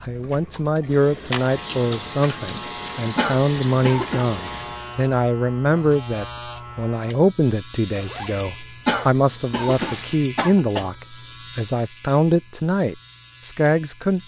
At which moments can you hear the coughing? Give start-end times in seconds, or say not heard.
3.1-4.3, 8.8-10.9.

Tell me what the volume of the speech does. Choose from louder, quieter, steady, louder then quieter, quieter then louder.
steady.